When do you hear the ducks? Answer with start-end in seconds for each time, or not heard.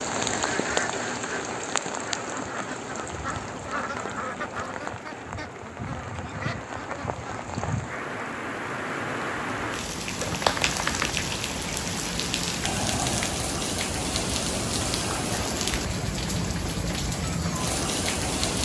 0.3-8.2.